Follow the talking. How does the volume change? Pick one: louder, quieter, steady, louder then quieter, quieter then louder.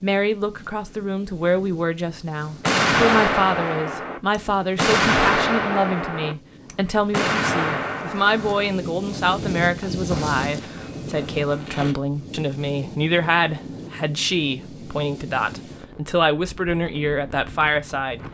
steady.